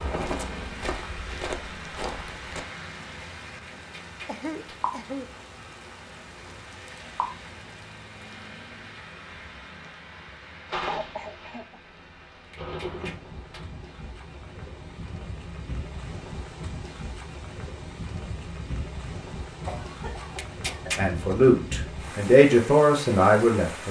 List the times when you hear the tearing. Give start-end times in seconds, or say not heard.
3.9-4.8, 12.5-13.6, 20.4-21.0.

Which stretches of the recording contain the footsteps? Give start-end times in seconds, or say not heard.
0.1-2.6.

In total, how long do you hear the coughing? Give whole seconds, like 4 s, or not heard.
4 s.